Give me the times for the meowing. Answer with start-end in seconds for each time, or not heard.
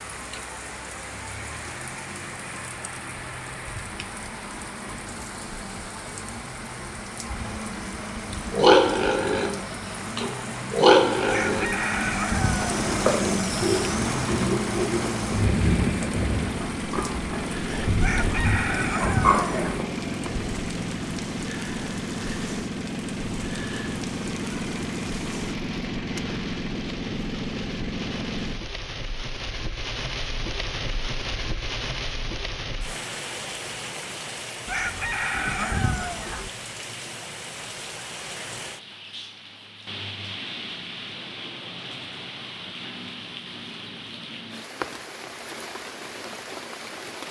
not heard.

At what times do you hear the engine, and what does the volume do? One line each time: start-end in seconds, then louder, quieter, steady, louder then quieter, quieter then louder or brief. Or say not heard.
0.0-28.6 louder.